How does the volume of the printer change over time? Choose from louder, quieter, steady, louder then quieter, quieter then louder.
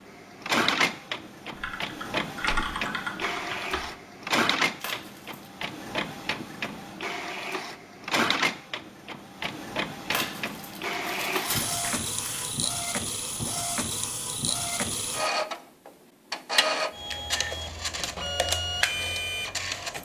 steady.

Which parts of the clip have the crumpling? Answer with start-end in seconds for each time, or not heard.
4.8-5.5, 10.1-12.6.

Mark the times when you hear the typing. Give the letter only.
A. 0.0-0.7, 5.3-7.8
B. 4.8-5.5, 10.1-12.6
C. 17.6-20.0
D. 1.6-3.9
D.